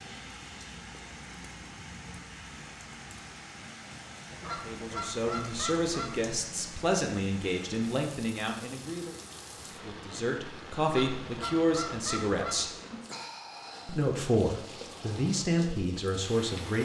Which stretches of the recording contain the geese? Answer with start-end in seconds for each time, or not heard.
4.4-6.2, 10.8-12.7.